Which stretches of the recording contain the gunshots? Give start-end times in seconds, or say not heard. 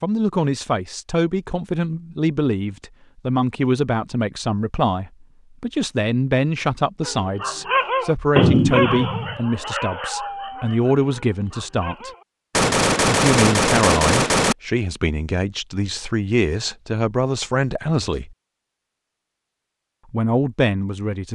12.5-14.6.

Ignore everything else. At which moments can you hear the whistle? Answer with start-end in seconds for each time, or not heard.
not heard.